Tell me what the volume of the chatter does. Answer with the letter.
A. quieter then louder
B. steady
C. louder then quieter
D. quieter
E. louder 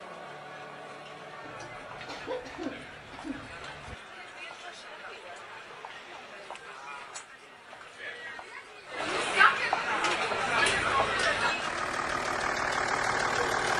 E.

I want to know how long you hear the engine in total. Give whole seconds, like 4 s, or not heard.
4 s.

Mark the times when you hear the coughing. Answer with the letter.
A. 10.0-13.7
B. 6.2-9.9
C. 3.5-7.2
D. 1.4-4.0
D.